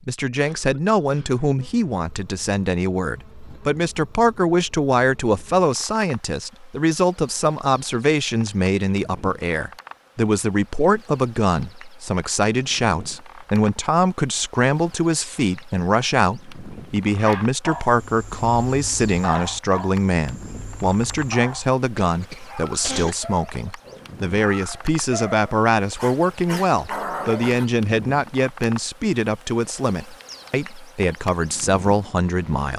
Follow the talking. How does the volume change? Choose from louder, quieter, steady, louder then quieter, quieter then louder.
steady.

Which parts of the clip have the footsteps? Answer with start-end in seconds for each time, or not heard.
not heard.